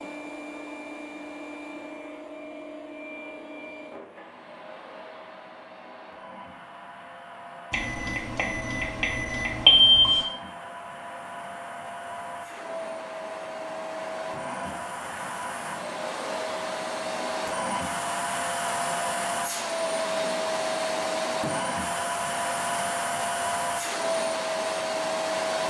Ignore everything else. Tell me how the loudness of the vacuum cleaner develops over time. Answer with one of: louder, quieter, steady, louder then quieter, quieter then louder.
louder.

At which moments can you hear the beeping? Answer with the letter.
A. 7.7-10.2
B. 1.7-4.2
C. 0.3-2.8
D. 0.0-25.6
A.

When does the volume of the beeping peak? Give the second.
10 s.